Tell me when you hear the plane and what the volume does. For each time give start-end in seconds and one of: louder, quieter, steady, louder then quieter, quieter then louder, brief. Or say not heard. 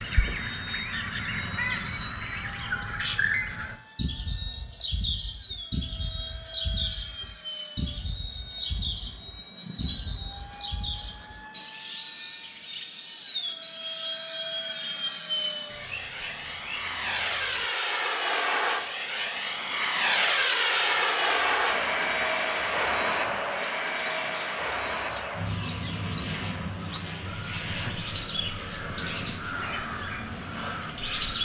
0.0-31.3 louder then quieter.